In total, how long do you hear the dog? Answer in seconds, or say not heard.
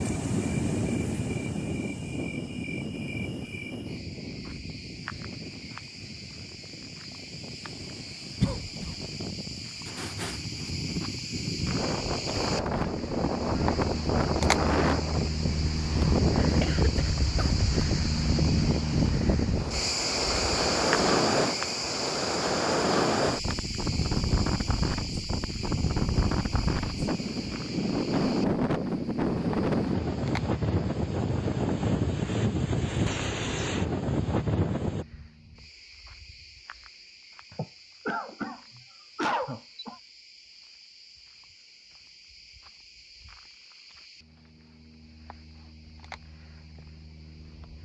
not heard.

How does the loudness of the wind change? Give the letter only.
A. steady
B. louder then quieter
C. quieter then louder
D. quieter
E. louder
E.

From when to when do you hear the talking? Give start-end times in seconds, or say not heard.
not heard.